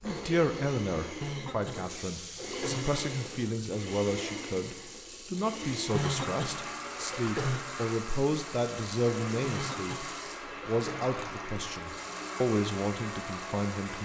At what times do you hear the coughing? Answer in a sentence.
The coughing can be heard from 1.2 to 3.0 s, from 5.9 to 7.7 s and from 9.4 to 11.1 s.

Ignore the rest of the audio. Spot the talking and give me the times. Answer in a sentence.
You can hear the talking from 0.0 to 10.1 s and from 10.7 to 14.0 s.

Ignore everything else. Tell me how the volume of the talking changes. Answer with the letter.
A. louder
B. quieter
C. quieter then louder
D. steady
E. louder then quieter
D.